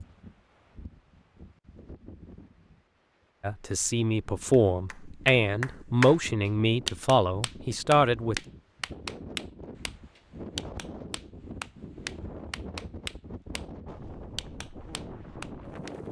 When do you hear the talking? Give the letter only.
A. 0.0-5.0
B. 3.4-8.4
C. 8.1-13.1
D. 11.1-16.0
B.